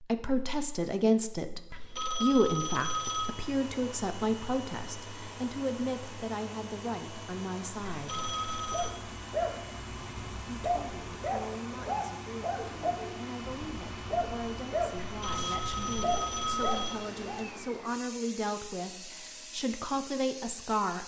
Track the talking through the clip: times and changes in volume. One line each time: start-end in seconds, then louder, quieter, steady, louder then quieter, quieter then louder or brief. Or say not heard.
0.0-8.3 quieter
10.7-21.0 louder.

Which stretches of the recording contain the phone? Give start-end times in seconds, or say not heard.
1.7-3.4, 8.0-8.9, 15.1-17.0.